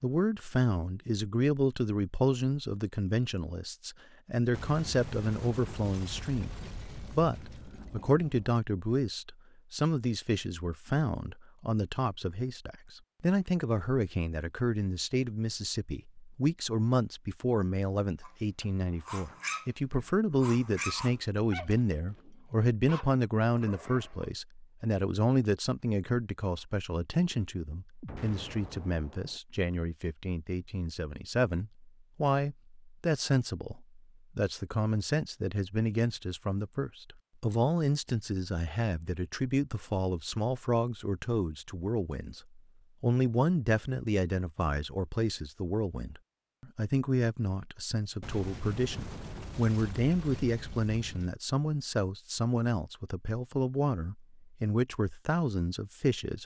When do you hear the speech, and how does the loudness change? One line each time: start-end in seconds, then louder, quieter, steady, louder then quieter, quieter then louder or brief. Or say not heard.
0.0-56.4 steady.